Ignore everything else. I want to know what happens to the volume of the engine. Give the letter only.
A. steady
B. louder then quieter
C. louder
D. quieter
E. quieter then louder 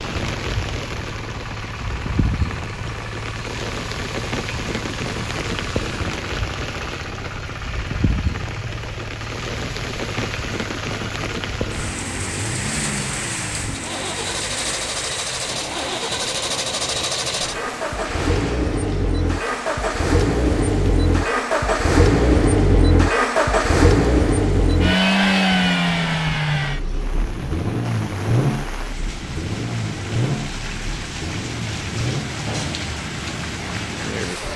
B.